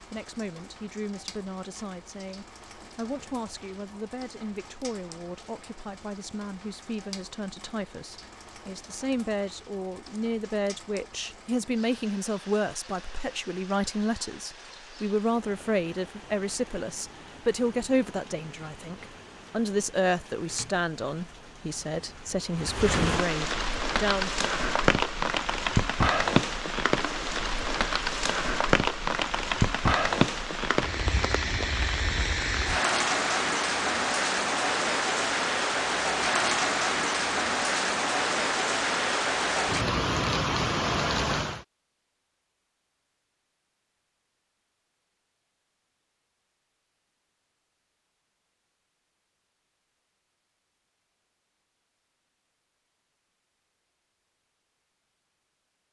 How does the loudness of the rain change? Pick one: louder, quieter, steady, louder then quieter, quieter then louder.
louder.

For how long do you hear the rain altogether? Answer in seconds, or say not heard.
42 s.